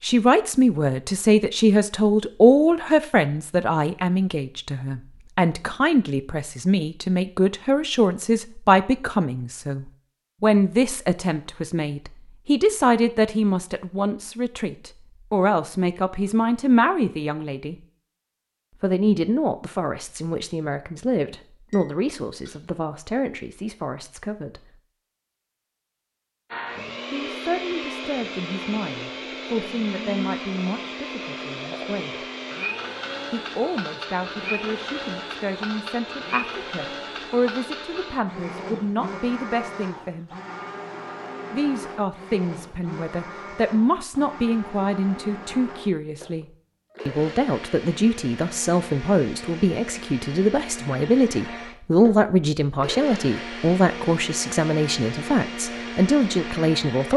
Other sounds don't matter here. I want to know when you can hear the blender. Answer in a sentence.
The blender can be heard from 26.5 to 57.1 s.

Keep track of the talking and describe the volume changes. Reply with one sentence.
The loudness of the talking goes down, then up.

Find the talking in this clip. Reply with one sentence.
You can hear the talking from 0.0 to 17.8 s, from 18.8 to 24.6 s, from 27.1 to 32.2 s, from 33.3 to 40.3 s, from 41.5 to 46.5 s and from 47.0 to 57.1 s.